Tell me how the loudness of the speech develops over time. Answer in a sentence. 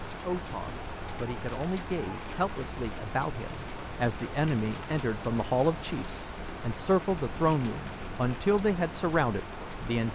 The loudness of the speech goes up.